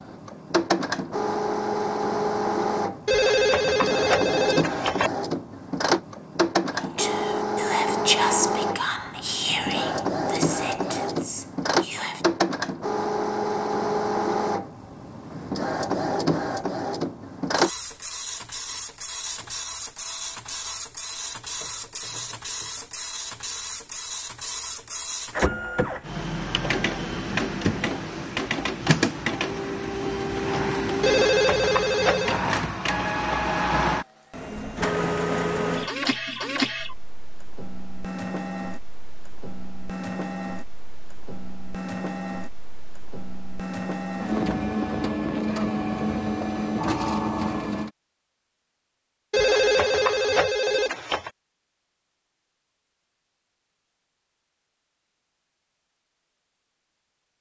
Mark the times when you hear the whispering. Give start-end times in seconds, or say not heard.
6.8-12.2.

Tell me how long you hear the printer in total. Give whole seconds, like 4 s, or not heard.
48 s.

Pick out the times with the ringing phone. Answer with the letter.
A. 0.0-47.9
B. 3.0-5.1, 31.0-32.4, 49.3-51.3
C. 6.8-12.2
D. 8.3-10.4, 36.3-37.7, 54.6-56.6
B.